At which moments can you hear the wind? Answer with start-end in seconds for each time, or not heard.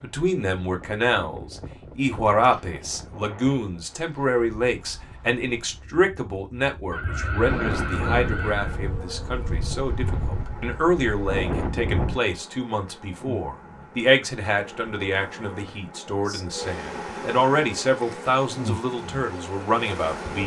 0.0-12.2.